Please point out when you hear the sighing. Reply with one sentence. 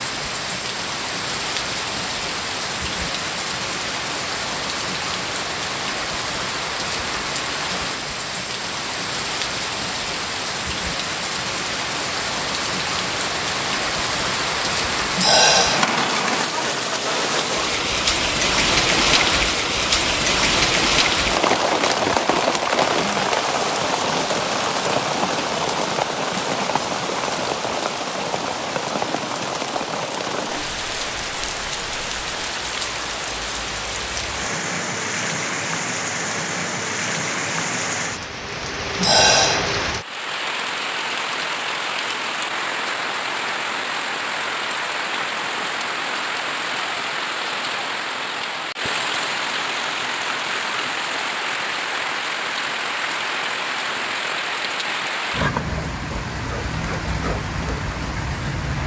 The sighing can be heard from 15.2 to 15.9 s and from 39.0 to 39.7 s.